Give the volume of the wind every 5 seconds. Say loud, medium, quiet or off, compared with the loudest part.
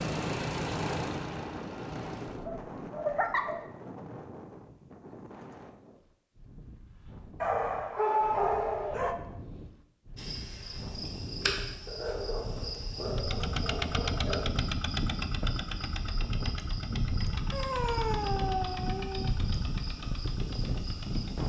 medium, quiet, medium, loud, loud.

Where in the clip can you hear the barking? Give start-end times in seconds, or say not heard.
2.4-3.6, 7.4-9.2, 11.8-14.5, 17.5-19.3.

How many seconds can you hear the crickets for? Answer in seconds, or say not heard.
11 s.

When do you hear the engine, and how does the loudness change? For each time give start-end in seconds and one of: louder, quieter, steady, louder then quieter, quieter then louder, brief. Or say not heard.
0.0-2.5 brief
13.1-21.4 quieter.